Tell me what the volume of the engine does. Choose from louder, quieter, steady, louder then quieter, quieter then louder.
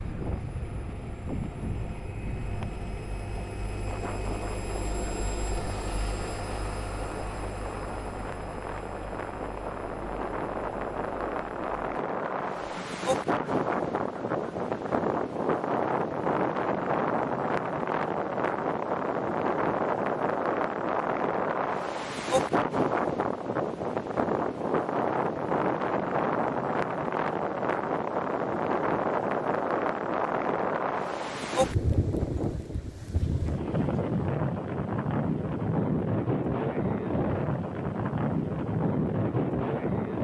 louder then quieter.